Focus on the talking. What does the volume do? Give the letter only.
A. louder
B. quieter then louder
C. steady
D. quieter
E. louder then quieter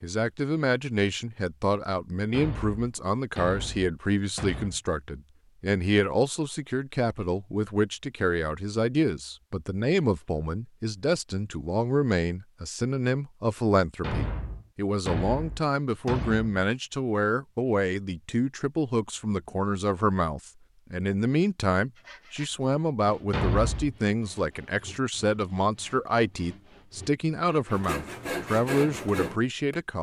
C.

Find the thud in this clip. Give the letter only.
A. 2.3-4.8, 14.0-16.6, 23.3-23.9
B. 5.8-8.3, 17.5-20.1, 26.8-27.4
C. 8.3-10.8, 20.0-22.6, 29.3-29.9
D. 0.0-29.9
A.